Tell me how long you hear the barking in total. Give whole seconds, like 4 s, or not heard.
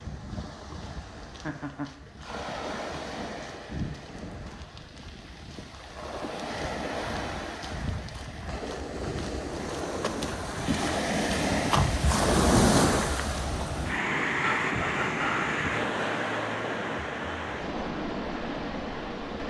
not heard.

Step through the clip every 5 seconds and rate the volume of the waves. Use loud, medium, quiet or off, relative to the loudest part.
quiet, medium, loud, medium.